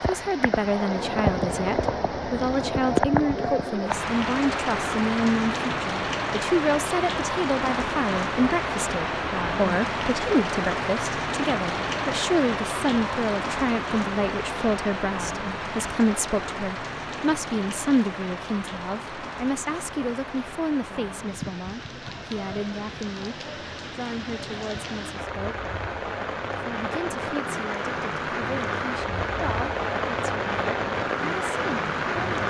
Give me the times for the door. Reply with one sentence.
You can't hear the door here.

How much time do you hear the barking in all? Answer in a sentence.
The barking can't be heard in this clip.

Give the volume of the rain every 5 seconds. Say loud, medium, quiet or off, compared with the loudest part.
loud, loud, loud, medium, medium, loud, loud.